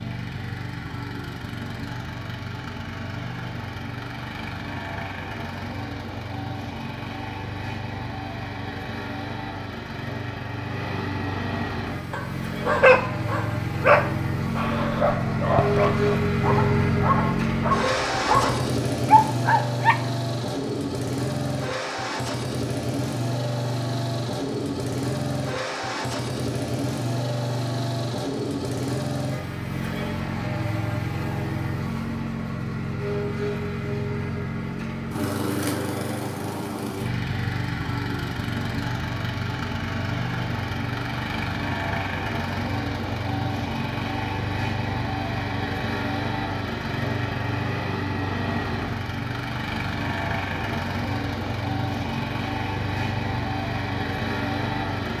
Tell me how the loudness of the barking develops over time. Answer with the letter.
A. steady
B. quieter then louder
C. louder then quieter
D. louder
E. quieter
B.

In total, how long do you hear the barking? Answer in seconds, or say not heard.
8 s.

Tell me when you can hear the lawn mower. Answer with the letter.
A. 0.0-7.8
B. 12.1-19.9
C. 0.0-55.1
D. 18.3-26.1
C.